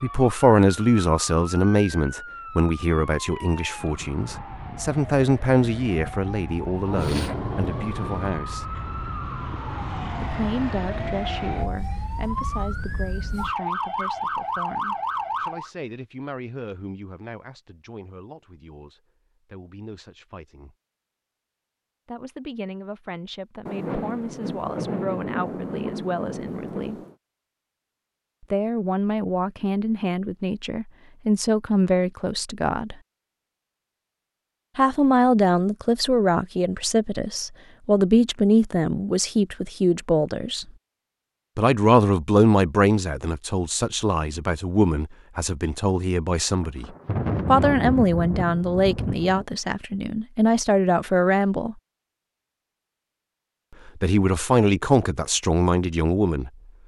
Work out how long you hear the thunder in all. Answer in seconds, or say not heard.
8 s.